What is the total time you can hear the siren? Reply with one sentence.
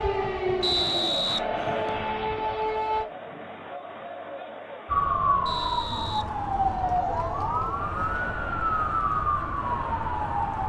You can hear the siren for 9 seconds altogether.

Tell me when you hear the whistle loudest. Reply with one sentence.
The volume of the whistle peaks at 1 second.